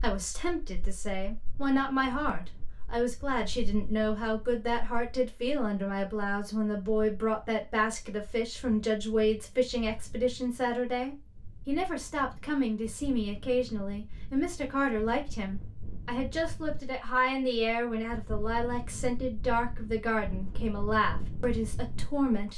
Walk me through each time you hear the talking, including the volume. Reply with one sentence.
You can hear the talking from 0.0 to 22.5 s, at a steady volume.